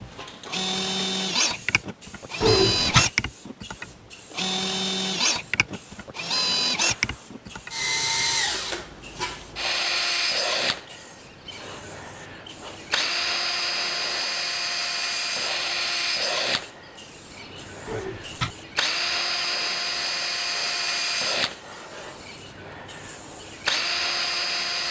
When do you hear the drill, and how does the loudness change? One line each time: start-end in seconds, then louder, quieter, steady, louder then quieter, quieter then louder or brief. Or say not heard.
0.0-24.8 steady.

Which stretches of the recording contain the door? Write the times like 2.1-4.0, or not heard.
2.4-3.0, 17.9-18.6.